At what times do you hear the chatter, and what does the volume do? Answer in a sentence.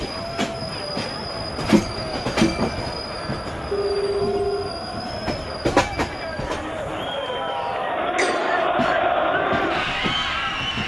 The chatter can be heard from 0.0 to 10.8 s, getting louder.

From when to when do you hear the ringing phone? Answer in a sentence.
The ringing phone can be heard from 3.7 to 4.8 s.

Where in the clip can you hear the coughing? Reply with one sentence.
The coughing can be heard from 7.5 to 8.7 s.